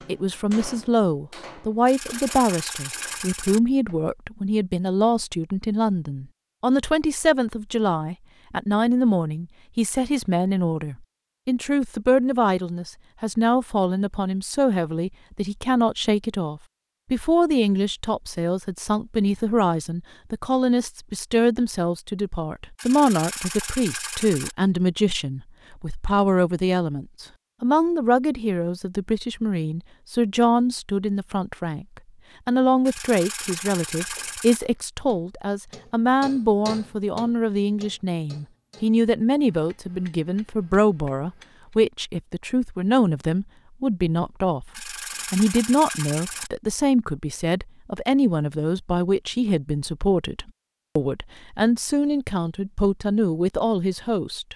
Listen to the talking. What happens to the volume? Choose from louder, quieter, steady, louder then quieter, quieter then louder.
steady.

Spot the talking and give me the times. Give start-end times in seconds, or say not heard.
0.1-54.5.